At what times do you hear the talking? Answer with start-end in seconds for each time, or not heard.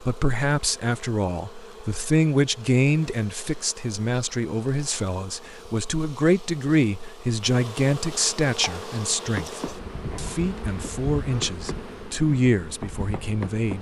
0.0-13.7.